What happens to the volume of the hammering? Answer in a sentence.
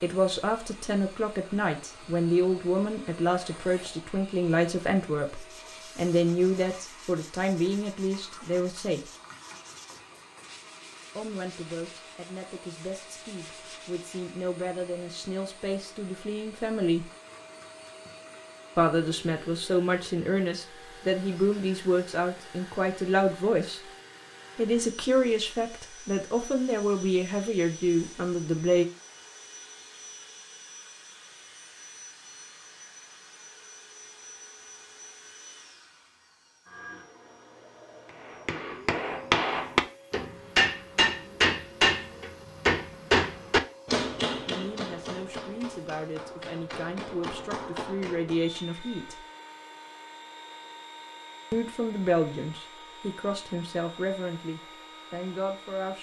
The loudness of the hammering goes down.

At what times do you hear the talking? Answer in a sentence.
The talking can be heard from 0.0 to 9.1 s, from 11.2 to 17.1 s, from 18.8 to 23.8 s, from 24.6 to 28.9 s, from 44.5 to 49.2 s and from 51.5 to 55.9 s.